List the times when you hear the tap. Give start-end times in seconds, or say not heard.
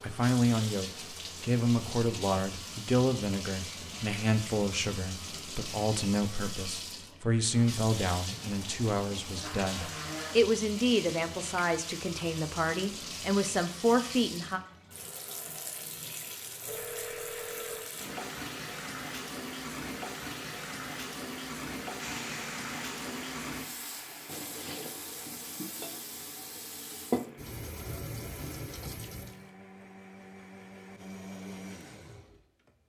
0.0-29.5.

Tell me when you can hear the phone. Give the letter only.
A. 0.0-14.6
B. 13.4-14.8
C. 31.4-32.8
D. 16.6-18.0
D.